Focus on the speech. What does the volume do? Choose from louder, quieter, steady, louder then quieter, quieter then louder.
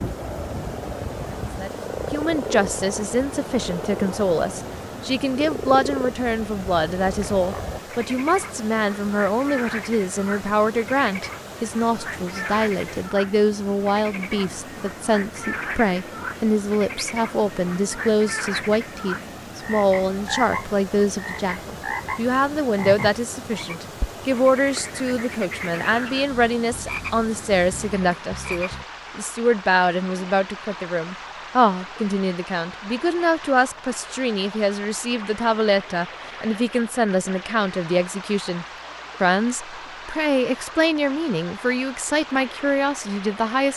steady.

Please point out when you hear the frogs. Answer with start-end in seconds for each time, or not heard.
0.0-28.9.